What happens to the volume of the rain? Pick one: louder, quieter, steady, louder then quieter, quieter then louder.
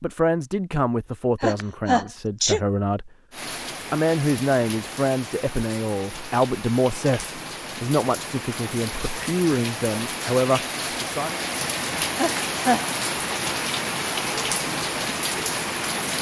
louder.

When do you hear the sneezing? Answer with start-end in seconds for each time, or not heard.
1.4-2.6, 12.2-12.8.